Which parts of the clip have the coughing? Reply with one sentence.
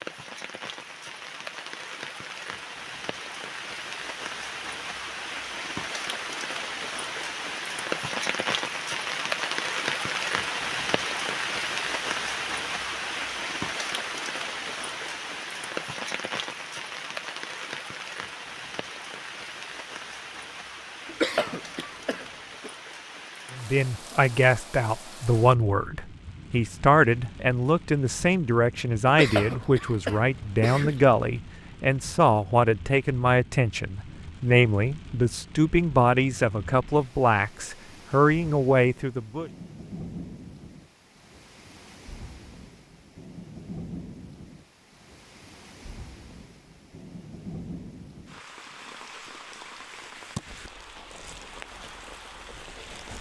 You can hear the coughing from 21.1 to 22.7 s and from 29.1 to 31.0 s.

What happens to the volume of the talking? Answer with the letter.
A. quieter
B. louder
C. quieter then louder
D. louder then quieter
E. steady
E.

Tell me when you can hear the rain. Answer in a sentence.
You can hear the rain from 0.0 to 53.1 s.